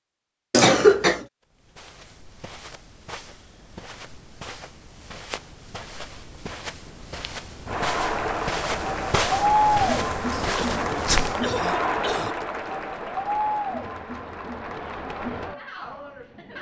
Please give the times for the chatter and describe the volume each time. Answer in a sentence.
The chatter can be heard from 7.7 to 16.5 s, getting quieter.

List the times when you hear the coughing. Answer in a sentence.
You can hear the coughing from 0.5 to 1.2 s and from 10.3 to 12.3 s.